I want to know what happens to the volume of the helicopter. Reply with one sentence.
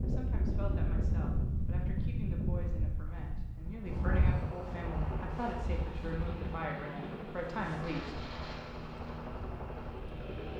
The loudness of the helicopter stays about the same.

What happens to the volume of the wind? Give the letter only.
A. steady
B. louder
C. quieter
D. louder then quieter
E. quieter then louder
C.